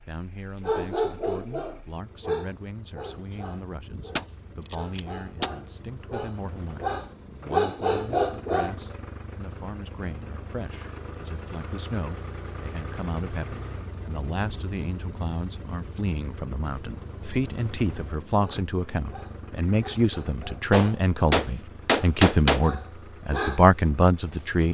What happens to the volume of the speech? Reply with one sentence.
The loudness of the speech goes up.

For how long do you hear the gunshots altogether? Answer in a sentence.
You can hear the gunshots for 3 seconds altogether.